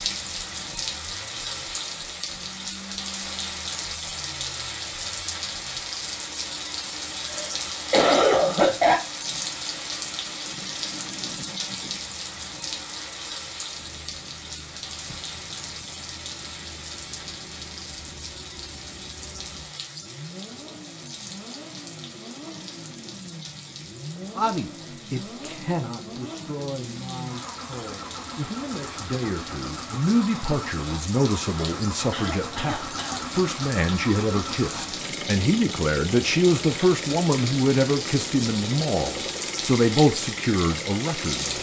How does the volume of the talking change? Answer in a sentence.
The volume of the talking goes up.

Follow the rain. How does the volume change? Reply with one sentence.
The volume of the rain goes down, then up.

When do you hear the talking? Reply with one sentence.
You can hear the talking from 24.4 to 41.5 s.